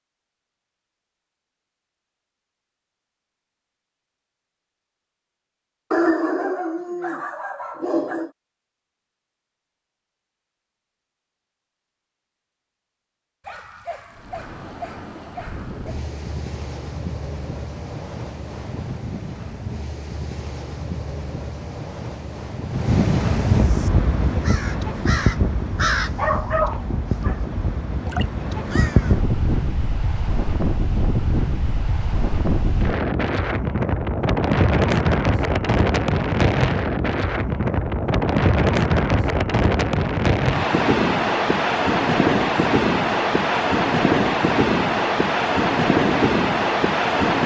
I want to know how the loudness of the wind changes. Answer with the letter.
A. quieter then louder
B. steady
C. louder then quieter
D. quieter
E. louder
E.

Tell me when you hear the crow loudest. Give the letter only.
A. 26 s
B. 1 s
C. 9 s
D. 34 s
A.